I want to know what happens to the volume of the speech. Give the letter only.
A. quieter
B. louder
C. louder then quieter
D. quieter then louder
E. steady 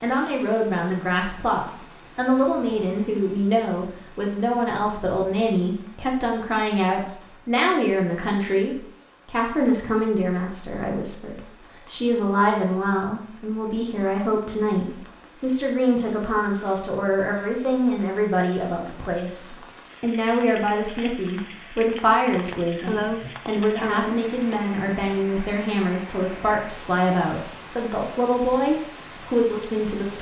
E.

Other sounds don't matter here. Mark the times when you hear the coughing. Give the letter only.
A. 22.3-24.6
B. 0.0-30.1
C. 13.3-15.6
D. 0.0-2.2
A.